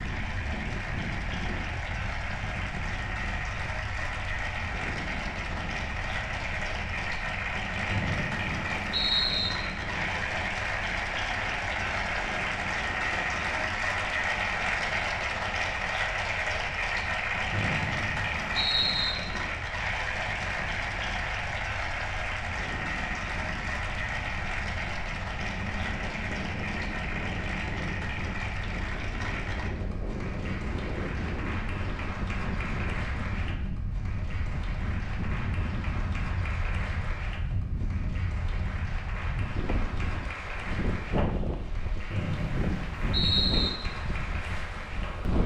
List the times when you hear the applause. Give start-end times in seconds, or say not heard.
0.0-45.4.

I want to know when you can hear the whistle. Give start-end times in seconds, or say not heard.
7.8-9.5, 17.5-19.1, 42.1-43.7.